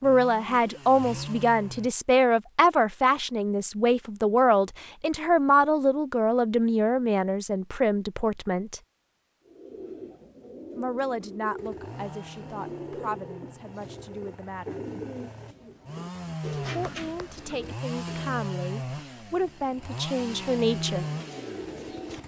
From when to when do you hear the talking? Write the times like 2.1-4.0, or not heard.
0.0-8.8, 10.8-14.8, 16.8-21.1.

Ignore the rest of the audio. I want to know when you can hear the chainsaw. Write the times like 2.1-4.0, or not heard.
0.0-1.9, 11.6-22.2.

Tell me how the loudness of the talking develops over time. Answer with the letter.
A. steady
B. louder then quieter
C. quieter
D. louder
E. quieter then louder
E.